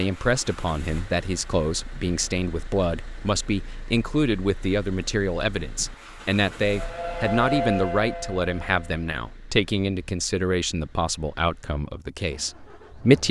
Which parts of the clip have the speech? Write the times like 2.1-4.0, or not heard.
0.0-13.2.